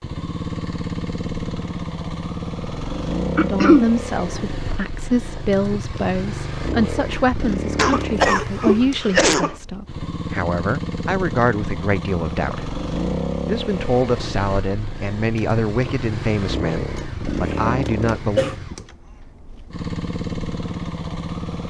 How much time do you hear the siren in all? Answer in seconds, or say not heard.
not heard.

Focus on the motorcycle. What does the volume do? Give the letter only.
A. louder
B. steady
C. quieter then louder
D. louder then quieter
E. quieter
B.